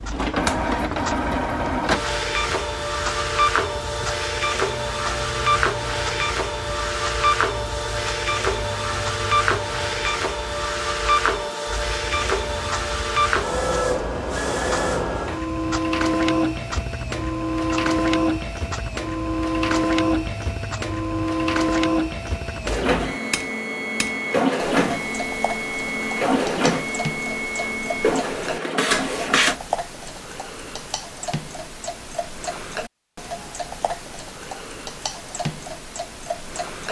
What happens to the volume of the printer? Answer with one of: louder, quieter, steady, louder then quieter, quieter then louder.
steady.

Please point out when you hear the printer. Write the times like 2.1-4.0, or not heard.
0.0-29.6.